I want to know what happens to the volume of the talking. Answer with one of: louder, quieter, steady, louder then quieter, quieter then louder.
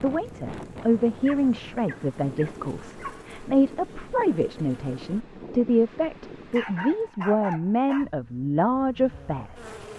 steady.